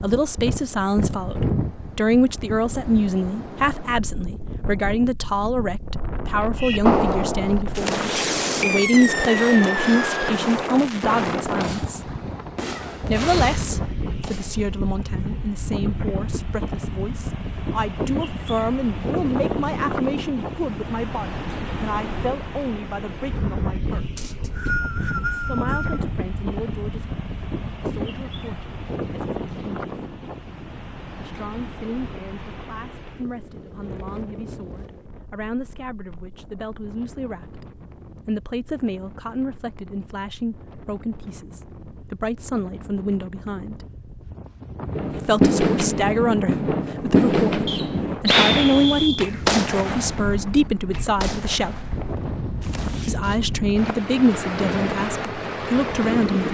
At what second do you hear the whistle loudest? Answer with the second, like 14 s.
48 s.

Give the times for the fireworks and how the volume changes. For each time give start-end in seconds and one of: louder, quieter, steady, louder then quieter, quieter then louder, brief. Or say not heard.
6.6-14.7 quieter
44.9-53.1 quieter.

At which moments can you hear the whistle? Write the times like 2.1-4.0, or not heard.
24.1-26.1, 47.6-49.2.